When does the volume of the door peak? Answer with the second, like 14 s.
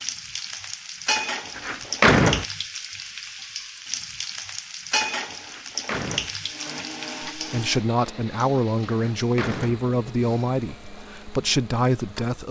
2 s.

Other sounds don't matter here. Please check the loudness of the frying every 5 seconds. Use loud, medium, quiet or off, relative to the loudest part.
loud, loud, quiet.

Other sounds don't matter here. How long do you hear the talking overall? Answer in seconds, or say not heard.
5 s.